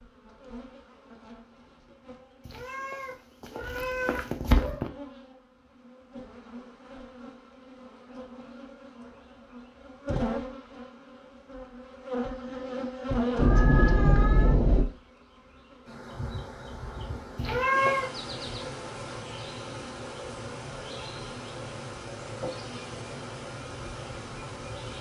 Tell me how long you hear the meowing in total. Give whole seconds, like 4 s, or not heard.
5 s.